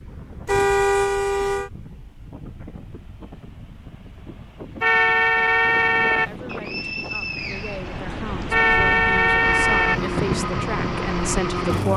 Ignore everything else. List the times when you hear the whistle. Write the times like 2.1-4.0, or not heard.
6.5-8.4.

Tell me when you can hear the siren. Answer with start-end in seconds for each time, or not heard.
not heard.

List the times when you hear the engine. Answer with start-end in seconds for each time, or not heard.
9.3-11.9.